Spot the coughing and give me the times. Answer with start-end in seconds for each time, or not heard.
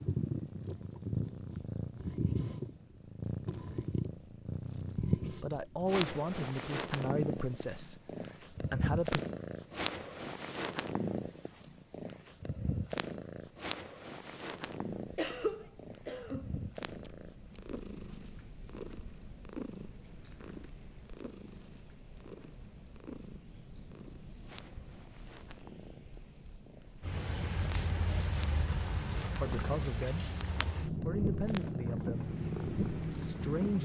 14.9-16.6.